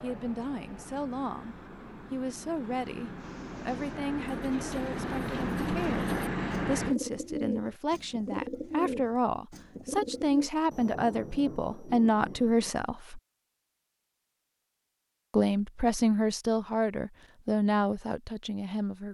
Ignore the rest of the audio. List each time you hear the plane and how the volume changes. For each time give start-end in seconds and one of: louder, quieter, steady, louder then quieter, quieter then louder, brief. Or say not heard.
0.0-7.0 louder.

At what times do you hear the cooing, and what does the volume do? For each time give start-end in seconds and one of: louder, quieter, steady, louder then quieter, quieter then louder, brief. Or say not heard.
3.1-10.5 louder.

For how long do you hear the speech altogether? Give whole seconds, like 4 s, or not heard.
17 s.